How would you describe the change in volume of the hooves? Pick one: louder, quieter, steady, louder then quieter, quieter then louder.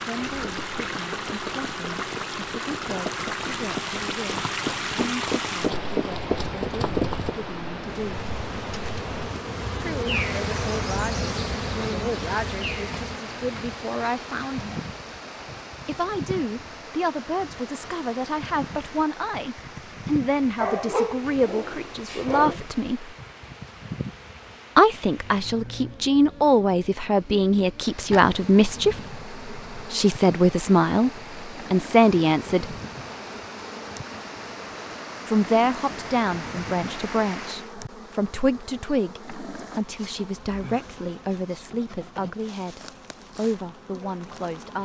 louder.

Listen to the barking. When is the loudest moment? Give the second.
21 s.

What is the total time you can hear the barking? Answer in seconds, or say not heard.
2 s.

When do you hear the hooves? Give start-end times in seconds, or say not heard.
0.3-7.3.